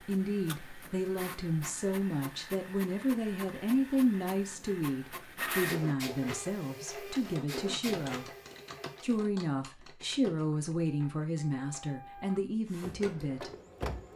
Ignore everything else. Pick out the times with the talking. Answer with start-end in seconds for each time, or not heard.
0.1-8.3, 9.0-13.5.